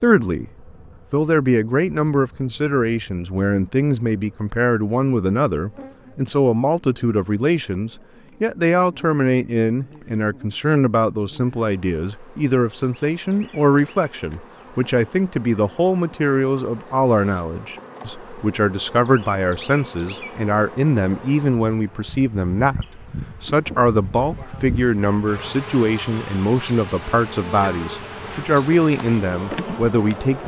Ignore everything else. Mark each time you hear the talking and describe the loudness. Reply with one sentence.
You can hear the talking from 0.0 to 30.4 s, at a steady volume.